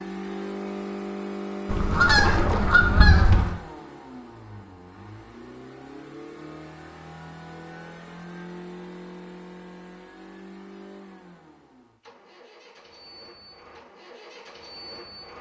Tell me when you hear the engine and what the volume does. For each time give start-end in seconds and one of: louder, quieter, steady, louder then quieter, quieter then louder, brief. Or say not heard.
0.0-15.3 quieter.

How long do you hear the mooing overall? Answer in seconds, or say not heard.
not heard.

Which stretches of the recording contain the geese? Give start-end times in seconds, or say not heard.
1.6-3.5.